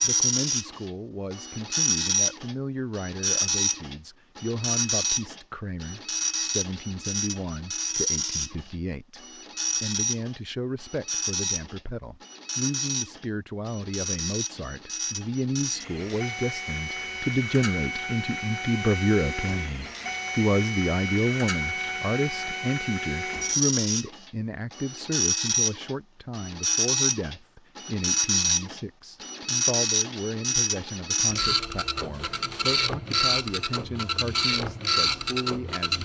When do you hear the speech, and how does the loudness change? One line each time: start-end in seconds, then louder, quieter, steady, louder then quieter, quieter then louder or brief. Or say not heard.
0.0-36.0 louder then quieter.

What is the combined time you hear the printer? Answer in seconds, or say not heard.
36 s.